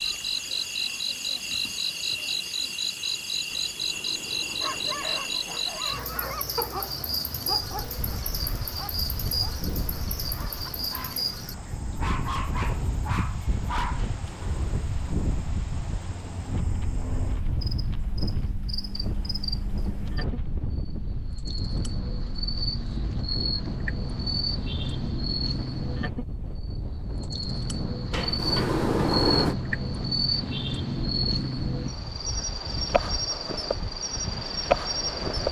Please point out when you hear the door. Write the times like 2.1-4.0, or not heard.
3.5-6.0, 14.2-14.8, 28.1-29.6.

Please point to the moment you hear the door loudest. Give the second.
29 s.